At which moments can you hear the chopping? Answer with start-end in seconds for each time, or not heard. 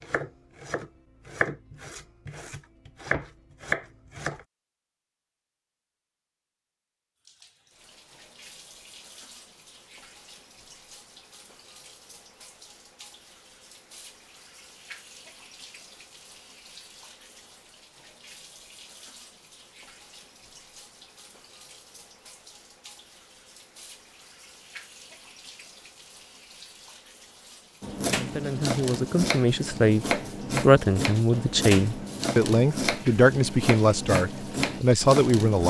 0.0-4.5, 27.8-35.6.